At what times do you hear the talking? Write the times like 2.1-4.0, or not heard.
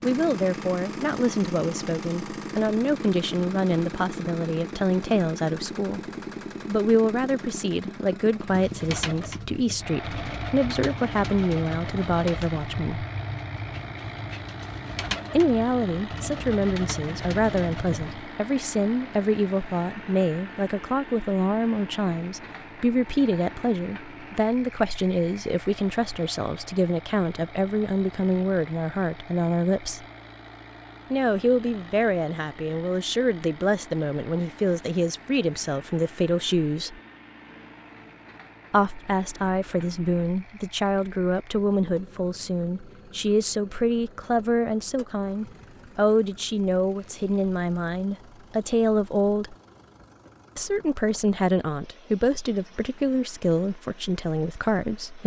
0.0-6.0, 6.7-13.1, 15.3-30.0, 31.1-37.0, 38.7-49.5, 50.5-55.2.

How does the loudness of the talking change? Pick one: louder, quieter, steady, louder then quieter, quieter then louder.
steady.